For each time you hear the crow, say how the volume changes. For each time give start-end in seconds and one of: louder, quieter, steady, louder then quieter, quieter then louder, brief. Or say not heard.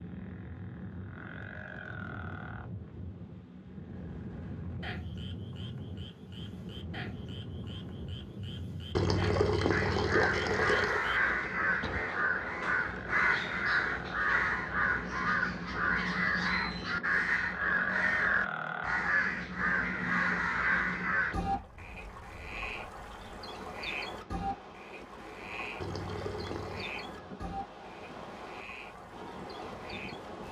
9.7-21.4 steady.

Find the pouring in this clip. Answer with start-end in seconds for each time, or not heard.
8.9-11.1, 25.8-26.9.